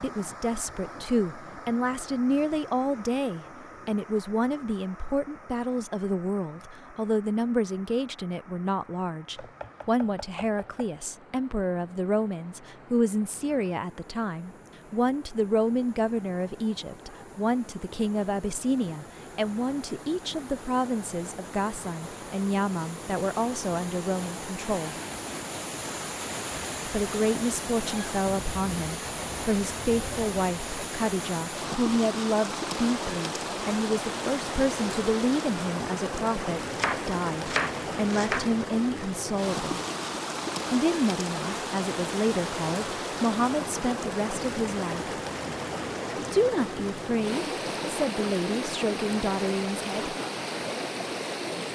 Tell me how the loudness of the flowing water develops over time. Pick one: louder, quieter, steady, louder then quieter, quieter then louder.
louder.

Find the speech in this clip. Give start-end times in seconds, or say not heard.
0.0-24.9, 26.9-39.8, 40.7-45.1, 46.1-50.1.